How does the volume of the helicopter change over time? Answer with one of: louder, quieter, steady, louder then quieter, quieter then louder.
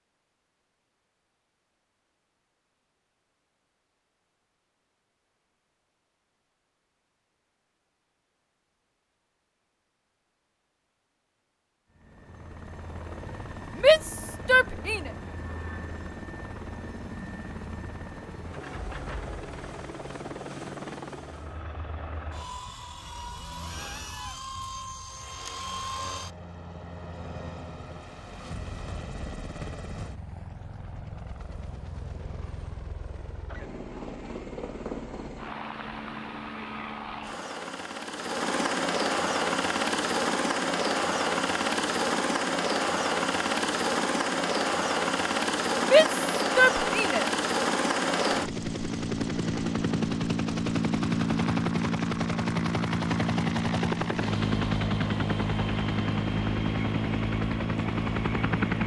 louder.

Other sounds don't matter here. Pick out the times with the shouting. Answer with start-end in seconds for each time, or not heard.
13.8-15.1, 45.8-47.2.